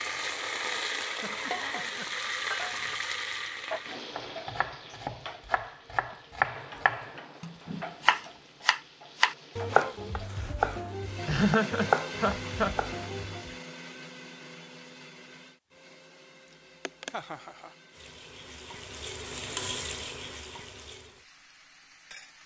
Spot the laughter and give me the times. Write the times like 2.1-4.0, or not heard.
1.1-2.1, 11.2-12.8, 16.9-17.7.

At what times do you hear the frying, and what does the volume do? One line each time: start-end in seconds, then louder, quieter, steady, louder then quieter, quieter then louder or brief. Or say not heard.
0.0-10.3 quieter
17.9-22.4 louder then quieter.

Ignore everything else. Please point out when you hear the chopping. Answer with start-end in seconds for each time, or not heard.
4.2-13.6.